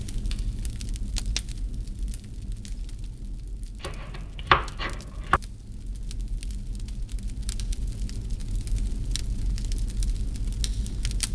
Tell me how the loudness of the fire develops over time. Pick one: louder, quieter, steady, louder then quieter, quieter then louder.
quieter then louder.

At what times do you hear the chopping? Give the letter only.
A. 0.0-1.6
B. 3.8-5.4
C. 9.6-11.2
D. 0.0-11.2
B.